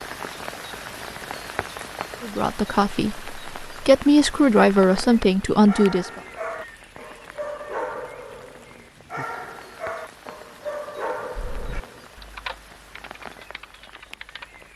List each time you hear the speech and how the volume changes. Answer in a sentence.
You can hear the speech from 2.2 to 6.2 s, getting quieter then louder.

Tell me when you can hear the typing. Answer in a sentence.
You can hear the typing from 11.3 to 14.5 s.